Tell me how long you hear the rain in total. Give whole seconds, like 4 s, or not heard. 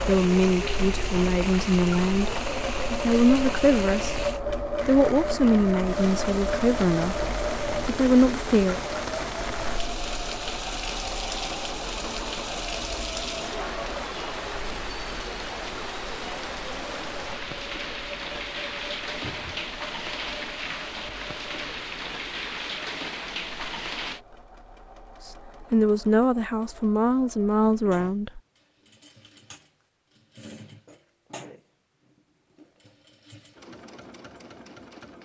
24 s.